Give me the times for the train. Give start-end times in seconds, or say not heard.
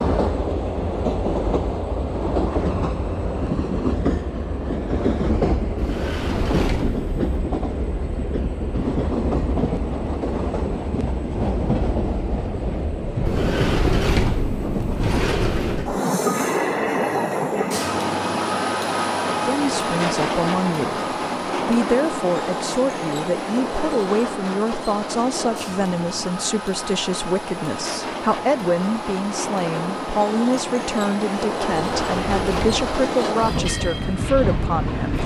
0.0-35.2.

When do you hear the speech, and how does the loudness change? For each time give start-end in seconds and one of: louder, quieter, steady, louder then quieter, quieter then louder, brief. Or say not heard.
19.4-35.2 steady.